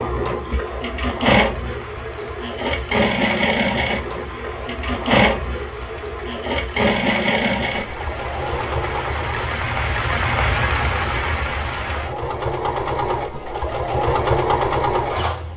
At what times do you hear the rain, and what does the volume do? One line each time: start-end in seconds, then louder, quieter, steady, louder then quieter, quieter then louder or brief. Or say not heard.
0.0-12.2 louder.